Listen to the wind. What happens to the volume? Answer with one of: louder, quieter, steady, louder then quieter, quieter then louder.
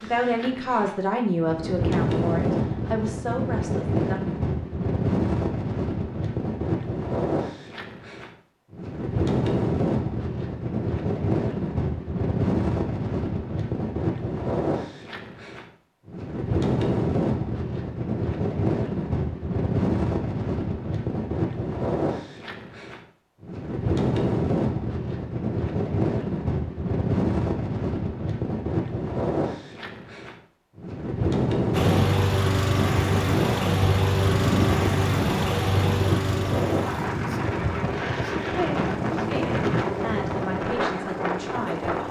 steady.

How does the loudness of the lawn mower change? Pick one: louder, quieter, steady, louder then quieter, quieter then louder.
quieter.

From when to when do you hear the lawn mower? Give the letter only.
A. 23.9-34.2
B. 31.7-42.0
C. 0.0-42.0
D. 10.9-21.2
B.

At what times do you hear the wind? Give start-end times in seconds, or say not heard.
0.0-42.0.